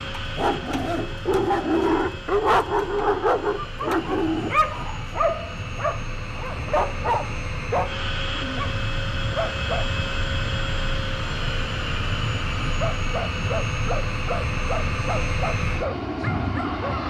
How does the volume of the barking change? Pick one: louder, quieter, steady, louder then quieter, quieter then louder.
quieter.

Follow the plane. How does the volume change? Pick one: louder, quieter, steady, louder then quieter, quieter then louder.
louder.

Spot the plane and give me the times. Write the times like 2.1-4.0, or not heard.
0.0-17.0.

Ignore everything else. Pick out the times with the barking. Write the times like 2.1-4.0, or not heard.
0.1-9.8, 12.8-17.0.